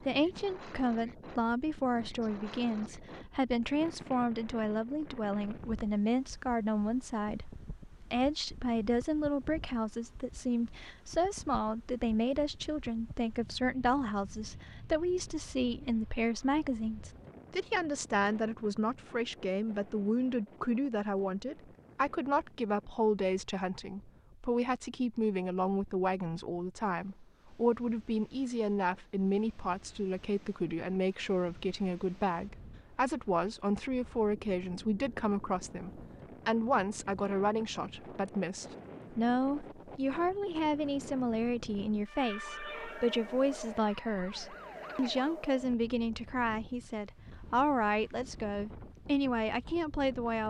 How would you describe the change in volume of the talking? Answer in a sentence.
The volume of the talking stays about the same.